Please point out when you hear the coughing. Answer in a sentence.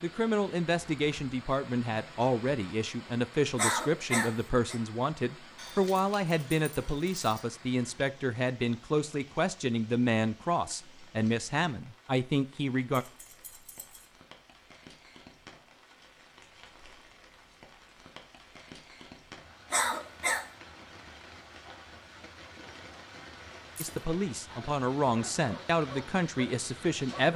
The coughing can be heard from 3.5 to 4.8 s and from 19.7 to 20.4 s.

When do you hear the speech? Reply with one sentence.
The speech can be heard from 0.0 to 13.1 s and from 23.8 to 27.3 s.